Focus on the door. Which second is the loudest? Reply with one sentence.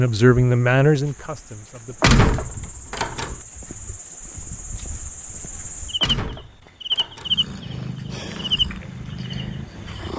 The volume of the door peaks at 2 seconds.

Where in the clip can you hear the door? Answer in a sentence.
You can hear the door from 2.0 to 3.4 s and from 6.0 to 7.3 s.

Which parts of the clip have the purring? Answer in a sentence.
You can hear the purring from 7.2 to 10.1 s.